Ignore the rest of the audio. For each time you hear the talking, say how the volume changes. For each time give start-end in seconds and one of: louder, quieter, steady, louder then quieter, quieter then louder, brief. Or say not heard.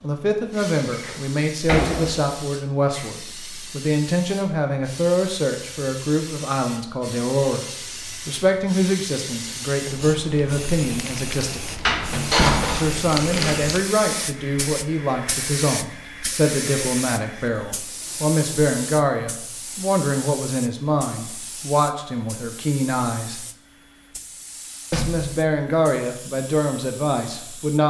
0.0-11.6 steady
12.7-23.4 steady
24.9-27.8 brief.